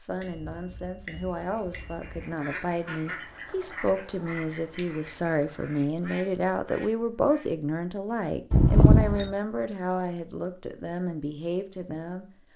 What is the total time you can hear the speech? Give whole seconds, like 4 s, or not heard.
12 s.